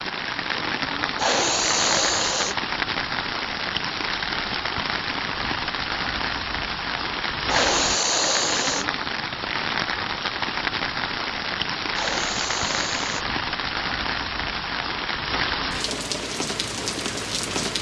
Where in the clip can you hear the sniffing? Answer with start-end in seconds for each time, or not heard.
1.1-2.5, 7.5-8.8, 11.9-13.2.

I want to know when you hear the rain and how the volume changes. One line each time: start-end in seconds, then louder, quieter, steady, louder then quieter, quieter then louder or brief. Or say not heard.
0.0-17.7 steady.